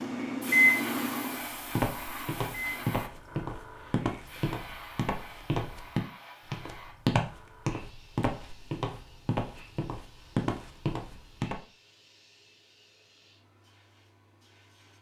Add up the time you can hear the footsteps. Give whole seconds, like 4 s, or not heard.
10 s.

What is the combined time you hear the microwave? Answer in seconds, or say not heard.
3 s.